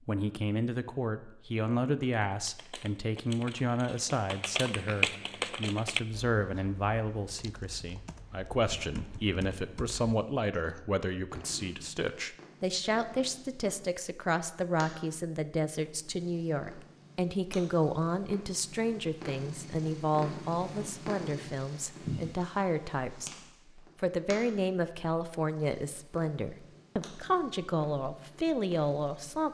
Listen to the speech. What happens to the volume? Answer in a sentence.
The volume of the speech stays about the same.